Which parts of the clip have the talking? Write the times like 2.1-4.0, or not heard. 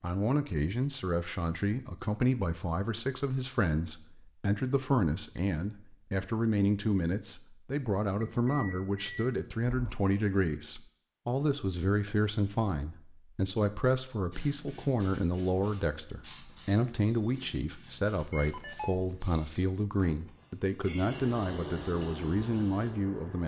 0.0-23.4.